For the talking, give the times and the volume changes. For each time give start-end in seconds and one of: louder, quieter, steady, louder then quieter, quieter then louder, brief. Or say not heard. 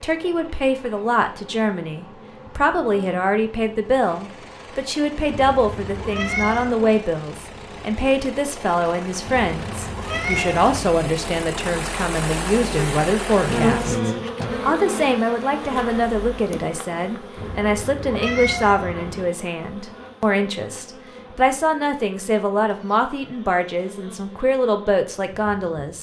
0.0-25.9 steady.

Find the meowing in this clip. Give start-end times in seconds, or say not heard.
5.3-6.8, 9.2-10.9, 17.4-19.3.